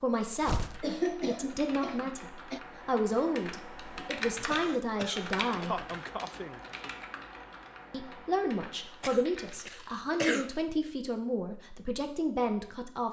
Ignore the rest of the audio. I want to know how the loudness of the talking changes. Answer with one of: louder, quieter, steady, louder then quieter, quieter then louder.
steady.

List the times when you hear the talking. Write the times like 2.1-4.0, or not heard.
0.0-5.8, 7.9-13.0.